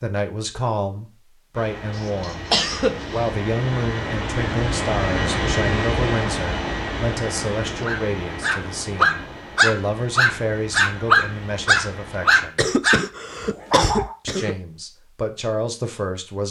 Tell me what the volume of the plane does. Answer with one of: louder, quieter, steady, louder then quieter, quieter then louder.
louder then quieter.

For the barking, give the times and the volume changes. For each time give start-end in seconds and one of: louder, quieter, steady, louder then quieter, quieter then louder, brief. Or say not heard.
7.8-13.0 steady
13.7-14.2 brief.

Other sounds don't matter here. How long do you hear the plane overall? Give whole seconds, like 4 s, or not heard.
11 s.